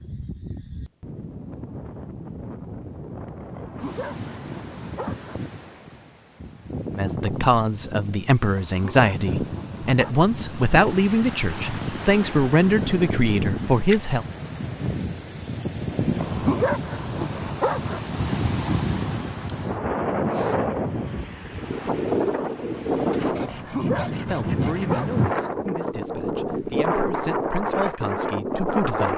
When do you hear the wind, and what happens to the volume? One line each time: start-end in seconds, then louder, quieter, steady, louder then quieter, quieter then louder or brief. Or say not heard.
0.0-29.1 louder.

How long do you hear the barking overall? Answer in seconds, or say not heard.
7 s.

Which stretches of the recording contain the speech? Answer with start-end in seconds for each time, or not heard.
7.0-14.2, 24.0-29.1.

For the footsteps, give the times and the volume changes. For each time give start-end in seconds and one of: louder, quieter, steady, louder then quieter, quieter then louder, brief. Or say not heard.
not heard.